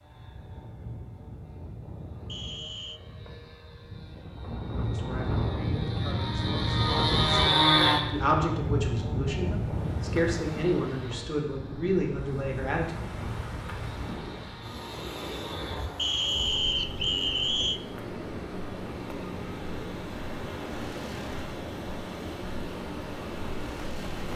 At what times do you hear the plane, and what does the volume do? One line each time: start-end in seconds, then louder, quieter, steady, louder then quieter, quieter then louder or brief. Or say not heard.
0.0-24.3 louder then quieter.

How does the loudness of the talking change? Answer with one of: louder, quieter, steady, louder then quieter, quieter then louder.
louder.